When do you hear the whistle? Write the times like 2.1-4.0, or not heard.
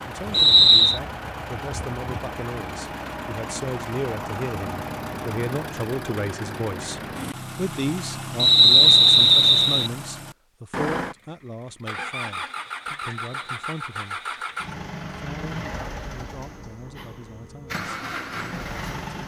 0.3-1.0, 8.3-9.9, 13.2-13.7.